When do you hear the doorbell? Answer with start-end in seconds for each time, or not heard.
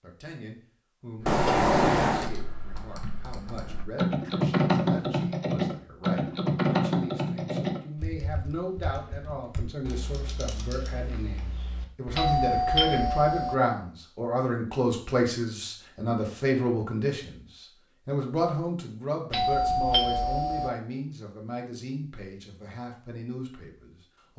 1.2-2.3, 12.1-13.6, 19.3-20.7.